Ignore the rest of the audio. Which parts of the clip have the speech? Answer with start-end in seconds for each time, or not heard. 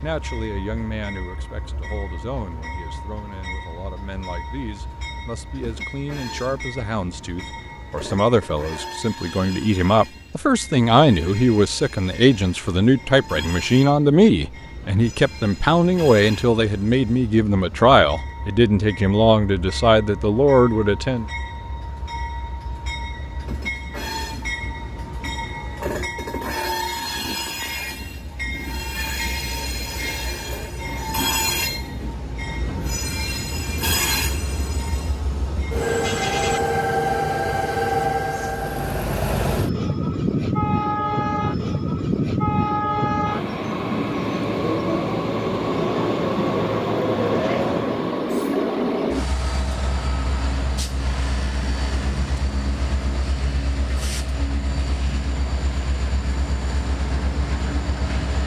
0.0-21.2.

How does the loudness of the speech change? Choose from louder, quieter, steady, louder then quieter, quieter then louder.
louder.